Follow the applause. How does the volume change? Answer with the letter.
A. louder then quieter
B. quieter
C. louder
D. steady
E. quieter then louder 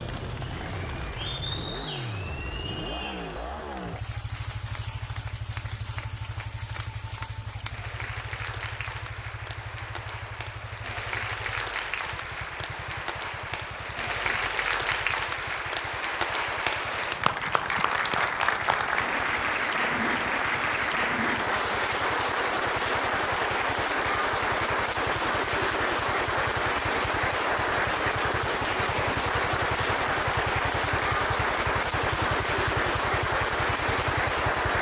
C.